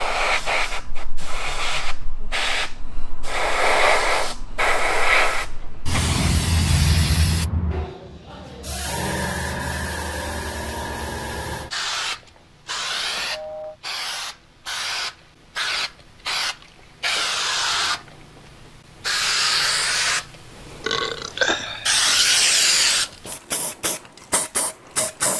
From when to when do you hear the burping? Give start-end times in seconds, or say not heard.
20.8-22.3.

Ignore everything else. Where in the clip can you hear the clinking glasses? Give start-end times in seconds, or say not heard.
not heard.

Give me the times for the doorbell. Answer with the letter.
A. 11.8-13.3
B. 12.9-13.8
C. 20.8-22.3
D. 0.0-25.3
B.